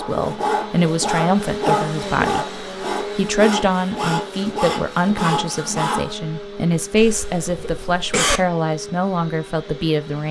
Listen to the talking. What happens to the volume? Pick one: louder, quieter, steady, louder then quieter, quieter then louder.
steady.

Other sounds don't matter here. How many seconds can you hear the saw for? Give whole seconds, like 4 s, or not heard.
6 s.